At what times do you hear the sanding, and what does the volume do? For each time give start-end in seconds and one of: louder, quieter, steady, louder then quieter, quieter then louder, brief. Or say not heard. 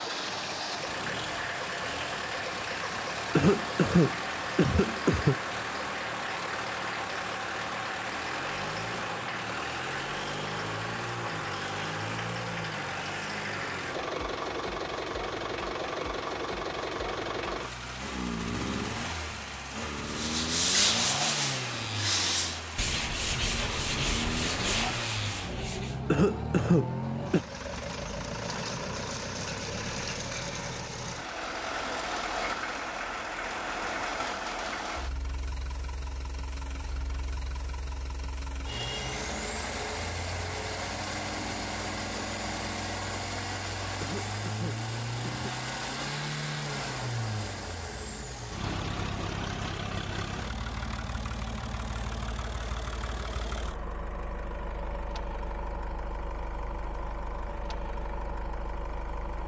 20.1-26.0 quieter.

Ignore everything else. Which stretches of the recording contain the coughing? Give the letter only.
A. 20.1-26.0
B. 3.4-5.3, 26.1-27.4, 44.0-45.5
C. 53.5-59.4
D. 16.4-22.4
B.